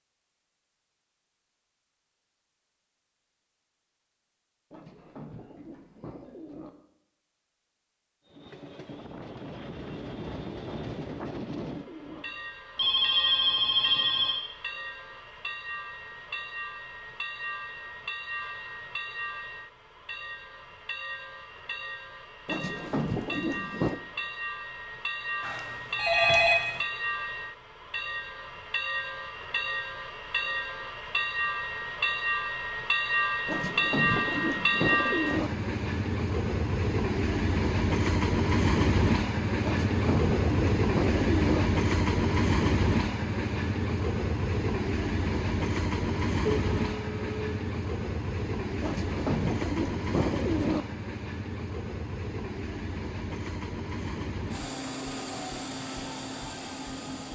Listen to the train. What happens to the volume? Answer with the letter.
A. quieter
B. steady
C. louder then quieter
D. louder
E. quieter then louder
C.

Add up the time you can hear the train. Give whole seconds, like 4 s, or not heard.
49 s.